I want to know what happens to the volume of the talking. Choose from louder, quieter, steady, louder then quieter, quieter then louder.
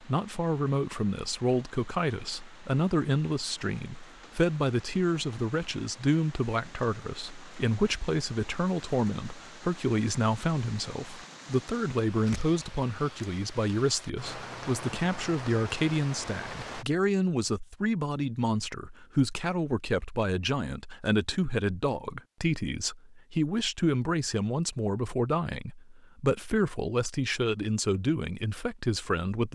steady.